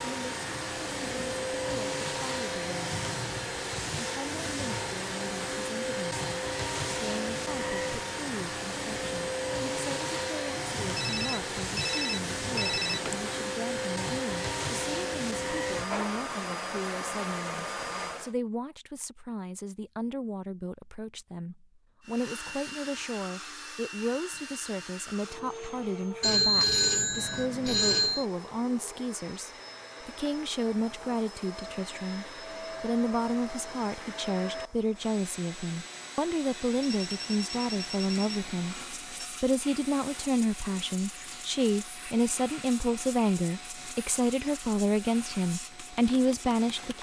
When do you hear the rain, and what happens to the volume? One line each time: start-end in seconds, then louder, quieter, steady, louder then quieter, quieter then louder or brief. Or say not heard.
not heard.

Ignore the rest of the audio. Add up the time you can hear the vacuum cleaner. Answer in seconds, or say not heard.
43 s.